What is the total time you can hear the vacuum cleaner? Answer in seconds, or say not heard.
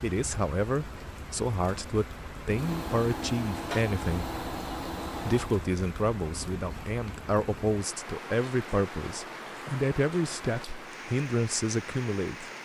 3 s.